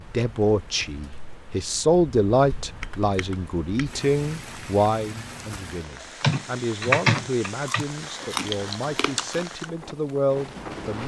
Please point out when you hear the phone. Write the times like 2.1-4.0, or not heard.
not heard.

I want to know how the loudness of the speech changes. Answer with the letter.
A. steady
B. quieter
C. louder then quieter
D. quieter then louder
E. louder
B.